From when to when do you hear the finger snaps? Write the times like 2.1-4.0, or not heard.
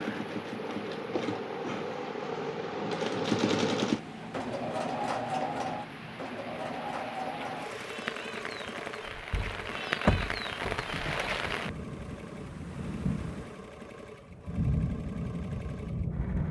not heard.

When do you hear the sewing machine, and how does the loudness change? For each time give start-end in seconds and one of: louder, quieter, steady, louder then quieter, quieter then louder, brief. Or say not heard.
0.0-16.4 quieter.